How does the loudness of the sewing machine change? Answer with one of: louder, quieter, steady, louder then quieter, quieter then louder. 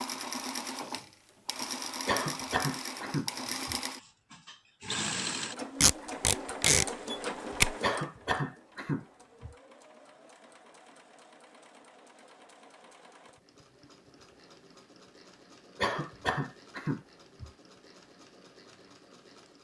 quieter.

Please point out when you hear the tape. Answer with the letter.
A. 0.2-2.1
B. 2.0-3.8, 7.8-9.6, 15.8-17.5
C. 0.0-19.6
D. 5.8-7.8
D.